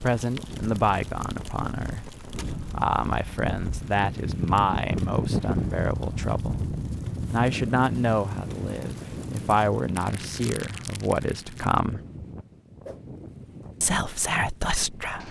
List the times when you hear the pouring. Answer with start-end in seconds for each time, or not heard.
not heard.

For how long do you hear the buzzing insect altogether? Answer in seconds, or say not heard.
not heard.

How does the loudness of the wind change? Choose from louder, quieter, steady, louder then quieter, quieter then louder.
louder then quieter.